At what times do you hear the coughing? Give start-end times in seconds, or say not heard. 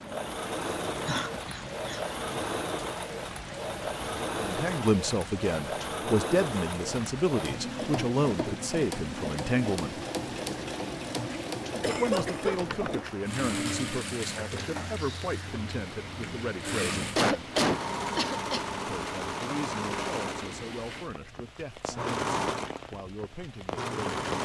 1.1-2.0, 11.8-12.6, 16.9-18.6.